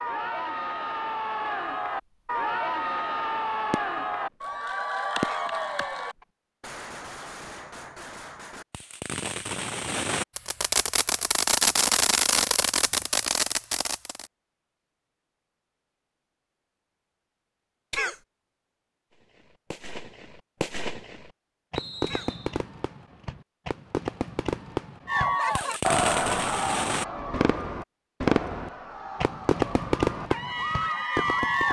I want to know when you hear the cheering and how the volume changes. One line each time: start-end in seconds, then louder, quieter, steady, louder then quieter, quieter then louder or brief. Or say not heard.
0.0-6.2 steady
25.1-31.6 quieter then louder.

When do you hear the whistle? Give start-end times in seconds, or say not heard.
21.8-22.6.